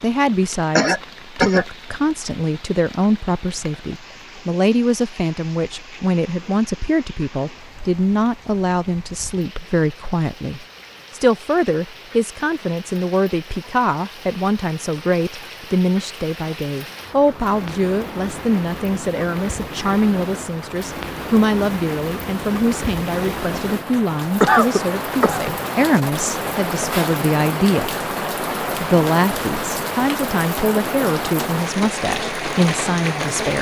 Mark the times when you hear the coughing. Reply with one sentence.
You can hear the coughing from 0.8 to 1.6 s and from 24.4 to 25.5 s.